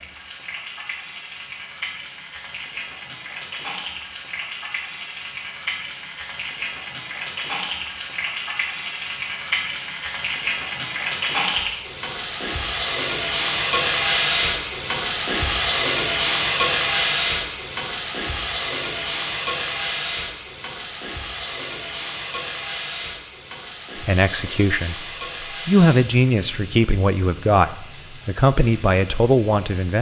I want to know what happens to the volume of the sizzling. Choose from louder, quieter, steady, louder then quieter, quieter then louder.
louder then quieter.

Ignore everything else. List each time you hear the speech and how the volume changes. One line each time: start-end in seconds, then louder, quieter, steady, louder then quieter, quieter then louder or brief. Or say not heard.
24.0-25.1 brief
25.6-29.9 steady.